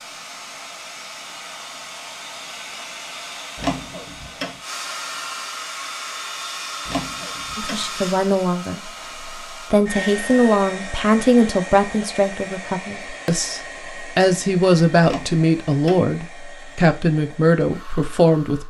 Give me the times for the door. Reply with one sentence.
You can hear the door from 3.5 to 4.6 s, from 6.8 to 7.8 s and from 15.0 to 16.1 s.